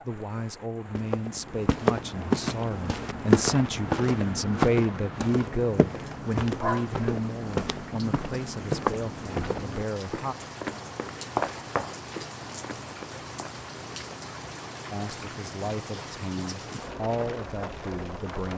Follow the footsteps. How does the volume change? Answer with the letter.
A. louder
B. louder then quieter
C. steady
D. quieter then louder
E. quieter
E.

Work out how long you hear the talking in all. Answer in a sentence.
The talking can be heard for 14 seconds in total.